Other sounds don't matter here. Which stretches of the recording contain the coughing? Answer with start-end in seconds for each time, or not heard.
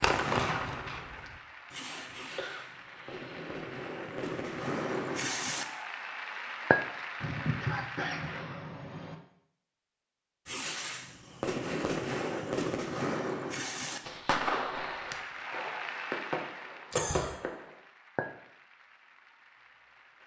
2.4-3.4, 7.2-9.2, 16.9-17.4.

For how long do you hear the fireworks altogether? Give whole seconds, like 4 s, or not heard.
13 s.